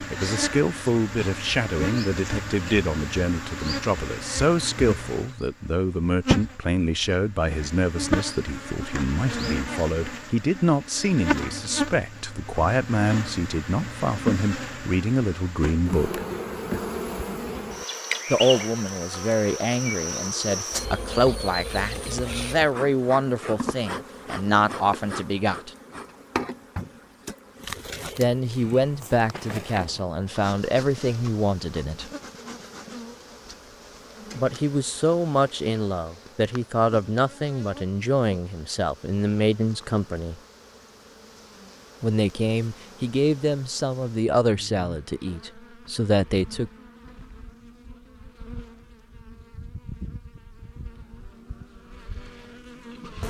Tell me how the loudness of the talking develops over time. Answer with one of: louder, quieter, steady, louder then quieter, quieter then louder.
steady.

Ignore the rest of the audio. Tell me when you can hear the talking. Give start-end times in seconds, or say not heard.
0.1-16.2, 18.3-25.7, 28.1-32.1, 34.3-40.4, 42.0-46.7.